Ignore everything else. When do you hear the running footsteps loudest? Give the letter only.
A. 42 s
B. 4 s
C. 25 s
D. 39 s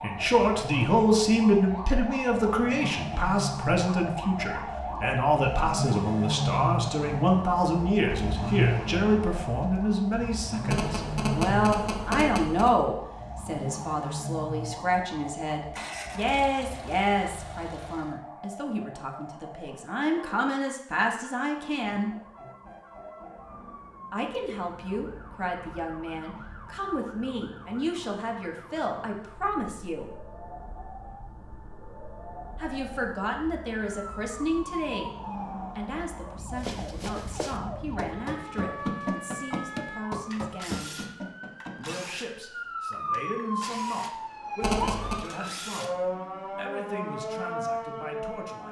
D.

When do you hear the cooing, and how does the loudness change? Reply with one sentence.
You can't hear the cooing here.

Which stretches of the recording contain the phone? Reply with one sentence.
You can hear the phone from 10.7 to 12.7 s and from 44.6 to 45.2 s.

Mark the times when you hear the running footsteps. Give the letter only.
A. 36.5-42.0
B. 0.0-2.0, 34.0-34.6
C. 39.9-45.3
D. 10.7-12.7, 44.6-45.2
A.